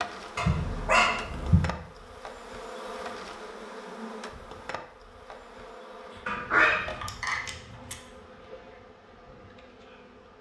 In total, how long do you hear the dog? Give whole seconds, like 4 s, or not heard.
3 s.